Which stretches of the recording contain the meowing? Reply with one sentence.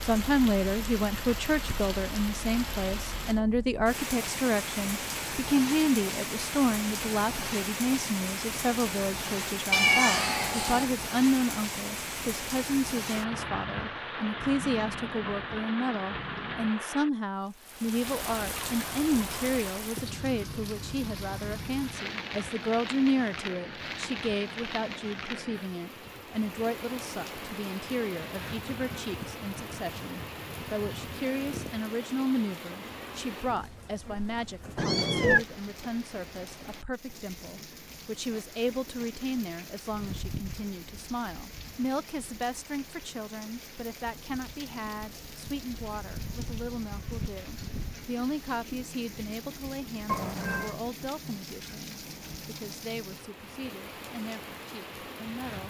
The meowing can be heard from 9.7 to 10.8 s, from 34.8 to 35.5 s and from 50.0 to 50.8 s.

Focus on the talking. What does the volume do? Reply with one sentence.
The volume of the talking goes down.